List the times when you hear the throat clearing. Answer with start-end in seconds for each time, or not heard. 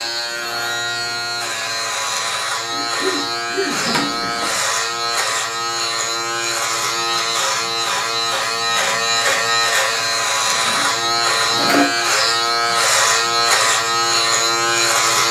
2.7-4.5.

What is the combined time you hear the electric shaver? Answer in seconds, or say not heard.
15 s.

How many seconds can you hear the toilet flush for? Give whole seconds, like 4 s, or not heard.
2 s.